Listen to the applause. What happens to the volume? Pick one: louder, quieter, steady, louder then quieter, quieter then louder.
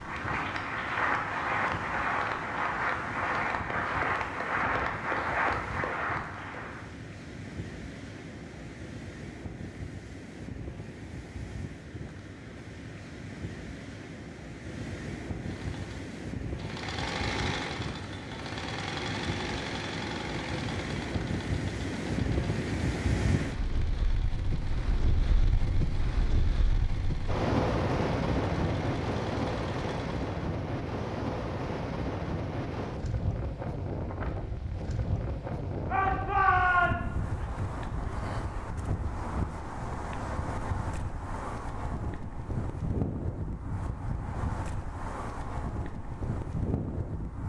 steady.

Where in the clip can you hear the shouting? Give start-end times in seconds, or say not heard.
35.9-37.2.